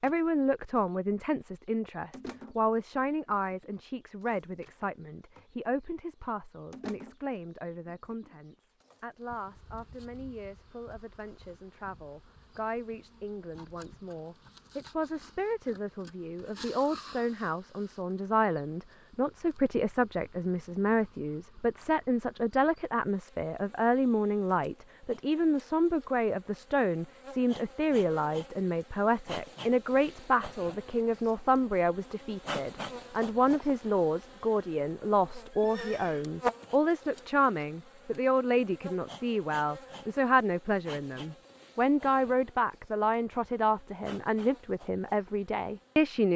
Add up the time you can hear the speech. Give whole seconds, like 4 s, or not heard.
46 s.